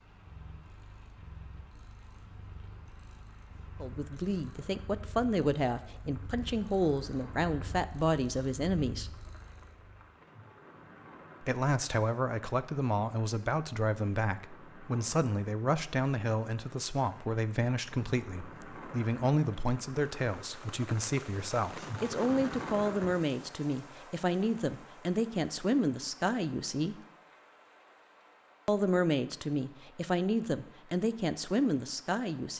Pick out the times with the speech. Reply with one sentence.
You can hear the speech from 3.8 to 9.1 s, from 11.4 to 26.9 s and from 28.6 to 32.5 s.